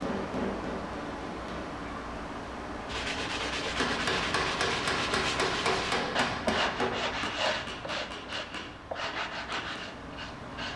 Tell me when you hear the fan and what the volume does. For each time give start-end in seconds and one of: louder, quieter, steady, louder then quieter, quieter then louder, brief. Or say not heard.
0.0-10.7 quieter.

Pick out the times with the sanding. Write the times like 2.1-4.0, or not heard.
2.9-10.7.